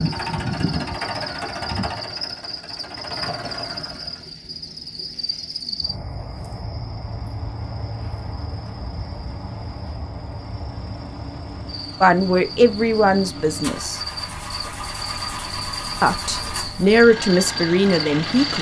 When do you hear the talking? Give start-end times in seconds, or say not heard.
12.0-14.0, 16.0-18.5.